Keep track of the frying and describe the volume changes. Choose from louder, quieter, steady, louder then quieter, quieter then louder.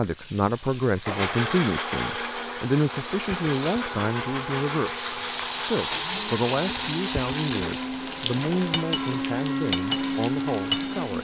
louder then quieter.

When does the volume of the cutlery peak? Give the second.
10 s.